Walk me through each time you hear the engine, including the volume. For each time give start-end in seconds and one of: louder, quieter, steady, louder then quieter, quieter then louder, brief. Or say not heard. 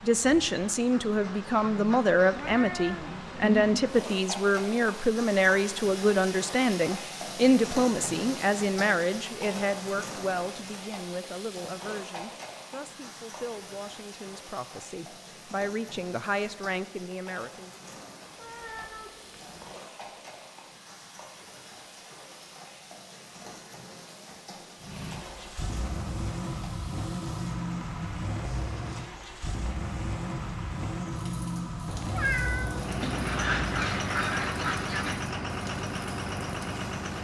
24.8-37.1 steady.